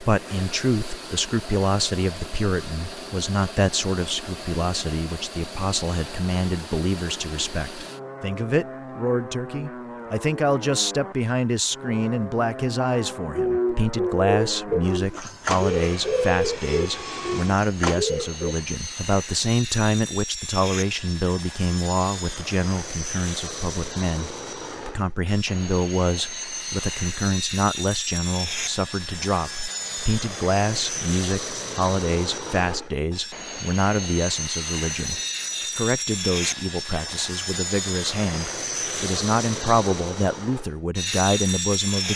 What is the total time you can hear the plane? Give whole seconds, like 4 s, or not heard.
42 s.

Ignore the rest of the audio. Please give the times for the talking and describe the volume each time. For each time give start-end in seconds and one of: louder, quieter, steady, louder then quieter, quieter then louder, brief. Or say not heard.
0.0-42.1 steady.